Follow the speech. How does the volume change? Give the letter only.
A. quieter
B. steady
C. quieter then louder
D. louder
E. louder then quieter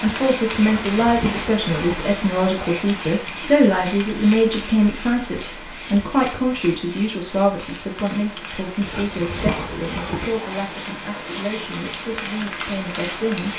A.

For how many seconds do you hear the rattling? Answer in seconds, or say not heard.
3 s.